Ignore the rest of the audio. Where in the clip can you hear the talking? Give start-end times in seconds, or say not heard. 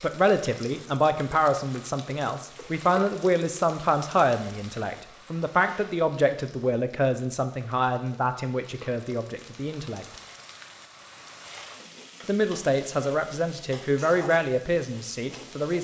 0.0-10.1, 12.2-15.8.